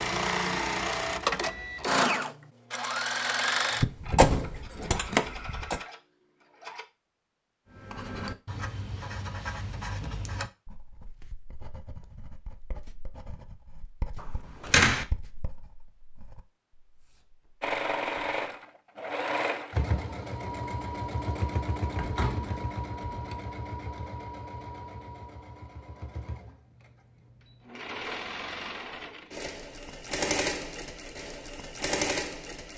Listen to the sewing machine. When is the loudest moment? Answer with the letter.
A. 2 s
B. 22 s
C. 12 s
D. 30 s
A.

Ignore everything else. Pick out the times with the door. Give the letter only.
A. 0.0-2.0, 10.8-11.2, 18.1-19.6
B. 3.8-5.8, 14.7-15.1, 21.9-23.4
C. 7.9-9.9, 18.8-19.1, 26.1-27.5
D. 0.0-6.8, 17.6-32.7
B.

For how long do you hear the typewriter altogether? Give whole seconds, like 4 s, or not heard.
not heard.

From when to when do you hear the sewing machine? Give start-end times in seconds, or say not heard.
0.0-6.8, 17.6-32.7.